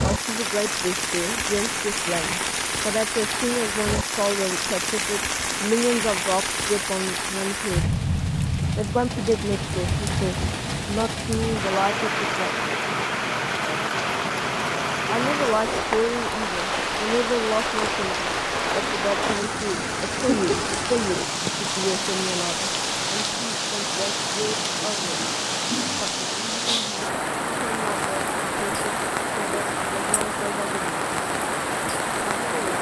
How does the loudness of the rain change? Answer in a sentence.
The loudness of the rain stays about the same.